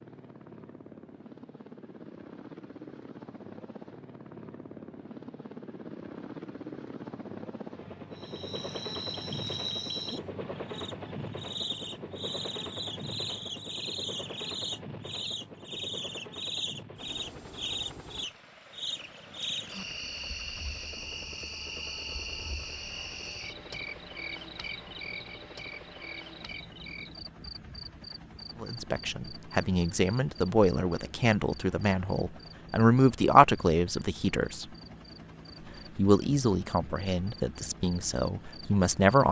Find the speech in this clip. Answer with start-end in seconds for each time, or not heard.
28.6-34.6, 36.0-39.2.